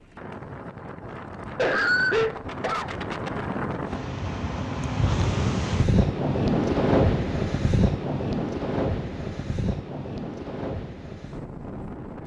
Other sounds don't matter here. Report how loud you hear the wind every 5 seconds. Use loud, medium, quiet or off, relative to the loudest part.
medium, loud, medium.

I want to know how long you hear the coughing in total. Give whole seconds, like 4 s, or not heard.
2 s.